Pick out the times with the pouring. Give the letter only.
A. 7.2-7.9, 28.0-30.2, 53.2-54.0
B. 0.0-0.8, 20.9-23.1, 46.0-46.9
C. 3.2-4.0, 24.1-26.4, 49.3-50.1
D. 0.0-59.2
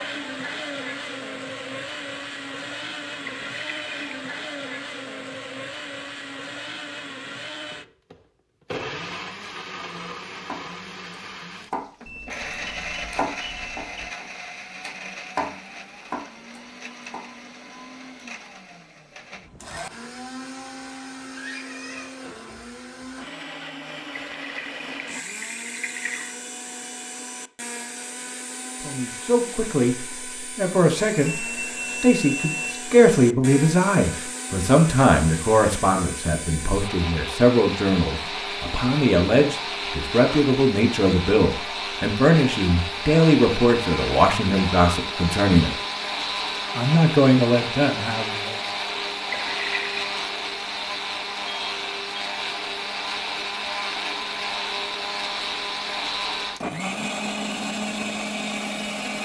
C.